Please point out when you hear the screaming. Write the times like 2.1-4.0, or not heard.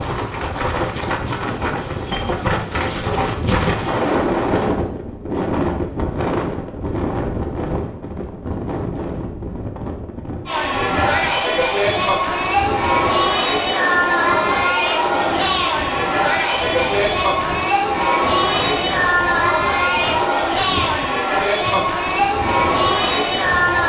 not heard.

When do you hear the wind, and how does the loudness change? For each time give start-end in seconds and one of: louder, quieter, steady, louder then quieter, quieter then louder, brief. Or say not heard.
0.0-23.8 quieter.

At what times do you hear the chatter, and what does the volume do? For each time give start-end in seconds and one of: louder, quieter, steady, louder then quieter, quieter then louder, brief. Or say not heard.
10.4-23.8 steady.